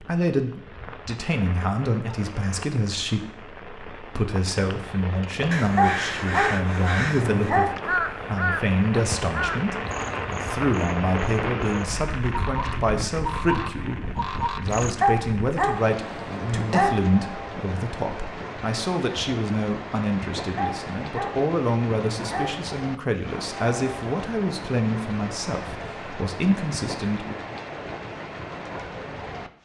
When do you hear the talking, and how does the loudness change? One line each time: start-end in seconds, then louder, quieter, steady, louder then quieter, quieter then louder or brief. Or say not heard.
0.0-27.4 steady.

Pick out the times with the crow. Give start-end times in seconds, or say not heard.
5.5-14.9.